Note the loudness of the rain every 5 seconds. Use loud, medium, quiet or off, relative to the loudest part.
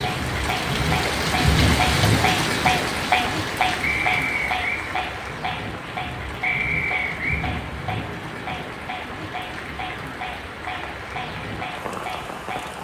loud, medium, medium.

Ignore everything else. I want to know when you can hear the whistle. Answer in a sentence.
The whistle can be heard from 3.8 to 4.8 s and from 6.4 to 7.5 s.